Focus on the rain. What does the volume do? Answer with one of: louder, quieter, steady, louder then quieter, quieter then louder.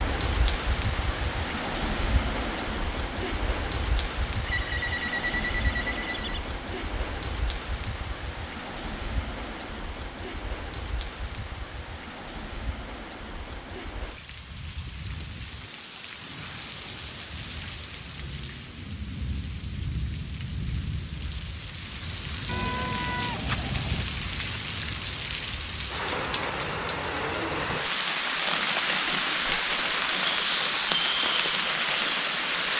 quieter then louder.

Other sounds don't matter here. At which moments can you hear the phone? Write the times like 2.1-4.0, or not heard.
4.4-6.4.